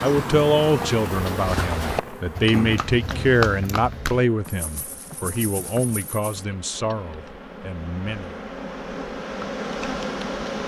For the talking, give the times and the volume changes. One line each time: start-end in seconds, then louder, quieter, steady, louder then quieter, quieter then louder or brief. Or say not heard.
0.0-8.4 quieter.